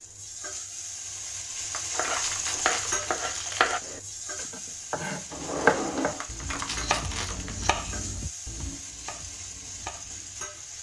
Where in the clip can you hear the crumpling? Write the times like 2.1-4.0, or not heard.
1.7-3.8, 6.2-7.8.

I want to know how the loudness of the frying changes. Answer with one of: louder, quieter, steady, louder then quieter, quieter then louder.
quieter.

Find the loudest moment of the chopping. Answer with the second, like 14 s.
6 s.